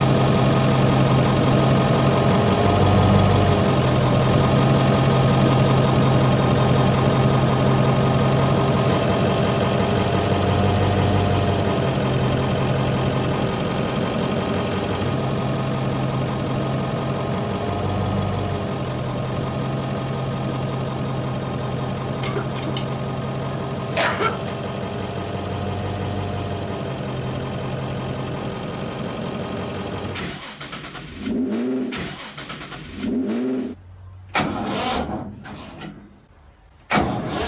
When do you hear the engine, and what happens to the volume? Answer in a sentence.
The engine can be heard from 0.0 to 37.4 s, getting quieter.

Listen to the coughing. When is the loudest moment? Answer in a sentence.
The loudest moment of the coughing is at 24 seconds.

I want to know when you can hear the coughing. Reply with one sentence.
You can hear the coughing from 22.2 to 24.6 s.